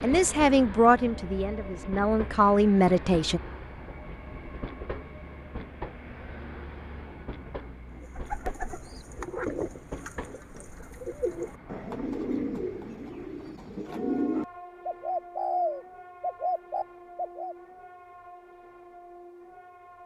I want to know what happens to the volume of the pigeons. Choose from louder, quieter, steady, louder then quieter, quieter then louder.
louder.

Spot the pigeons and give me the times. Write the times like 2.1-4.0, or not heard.
8.0-17.6.